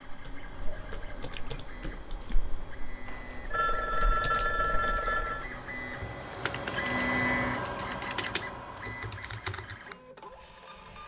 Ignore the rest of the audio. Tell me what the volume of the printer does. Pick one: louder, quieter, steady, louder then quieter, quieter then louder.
louder then quieter.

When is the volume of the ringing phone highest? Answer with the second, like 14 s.
4 s.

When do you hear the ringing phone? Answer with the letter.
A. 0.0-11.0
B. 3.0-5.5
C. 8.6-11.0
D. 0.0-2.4
B.